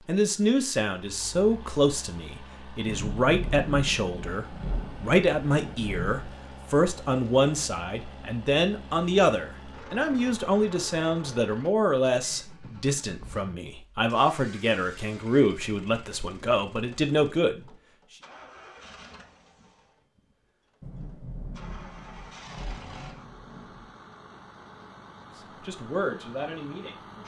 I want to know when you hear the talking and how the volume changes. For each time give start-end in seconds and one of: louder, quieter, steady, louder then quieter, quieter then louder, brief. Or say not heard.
0.1-17.6 steady
25.6-27.2 brief.